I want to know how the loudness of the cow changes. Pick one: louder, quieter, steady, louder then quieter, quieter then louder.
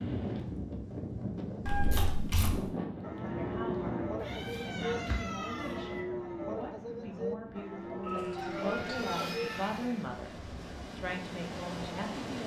steady.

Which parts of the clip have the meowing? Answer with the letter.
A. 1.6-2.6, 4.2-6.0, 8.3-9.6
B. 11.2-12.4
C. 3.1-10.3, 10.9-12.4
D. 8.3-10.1
A.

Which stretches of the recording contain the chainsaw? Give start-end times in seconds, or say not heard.
8.3-10.1.